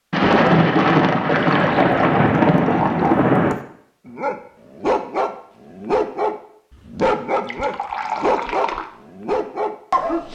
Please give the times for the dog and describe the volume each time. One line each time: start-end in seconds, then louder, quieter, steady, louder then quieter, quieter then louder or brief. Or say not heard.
4.0-10.3 steady.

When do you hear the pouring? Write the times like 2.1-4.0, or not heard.
1.2-3.2, 7.4-8.9.